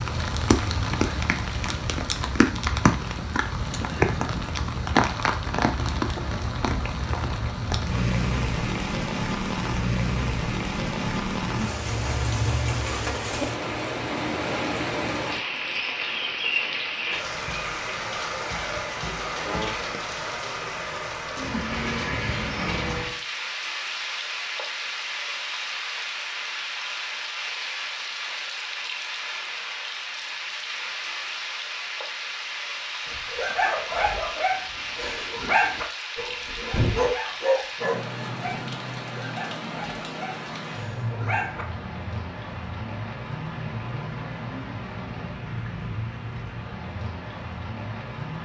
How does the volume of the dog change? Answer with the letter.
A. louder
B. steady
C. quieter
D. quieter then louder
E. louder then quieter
C.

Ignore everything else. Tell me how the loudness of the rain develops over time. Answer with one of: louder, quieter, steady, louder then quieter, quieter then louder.
quieter.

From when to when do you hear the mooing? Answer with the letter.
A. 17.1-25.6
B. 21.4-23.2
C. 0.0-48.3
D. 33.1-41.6
B.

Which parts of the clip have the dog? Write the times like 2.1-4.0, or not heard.
33.1-41.6.